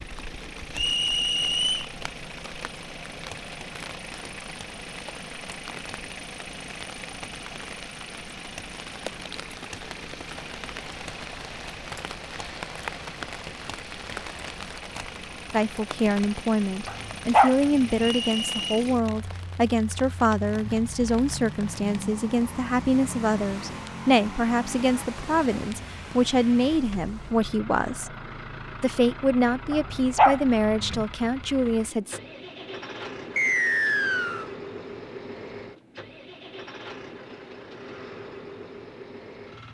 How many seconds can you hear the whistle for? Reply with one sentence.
The whistle can be heard for 3 seconds in total.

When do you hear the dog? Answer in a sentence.
You can hear the dog from 16.9 to 18.0 s and from 29.7 to 30.9 s.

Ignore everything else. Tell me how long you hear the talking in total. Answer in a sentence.
You can hear the talking for 16 seconds altogether.